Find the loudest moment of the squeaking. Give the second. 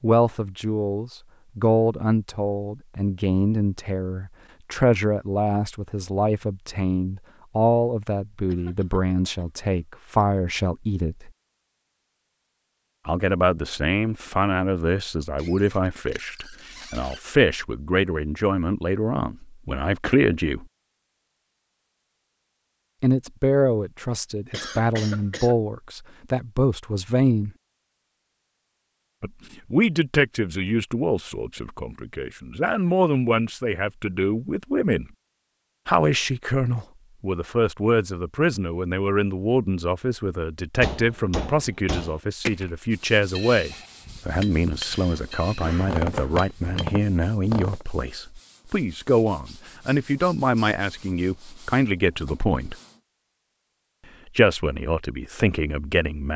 46 s.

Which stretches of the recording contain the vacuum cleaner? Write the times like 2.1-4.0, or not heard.
not heard.